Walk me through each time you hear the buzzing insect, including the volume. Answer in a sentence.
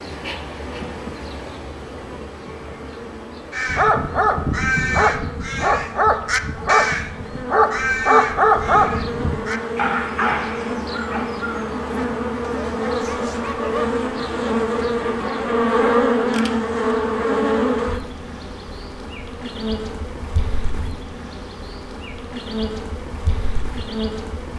The buzzing insect can be heard from 0.0 to 24.5 s, getting louder then quieter.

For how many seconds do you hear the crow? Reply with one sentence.
You can hear the crow for 8 seconds altogether.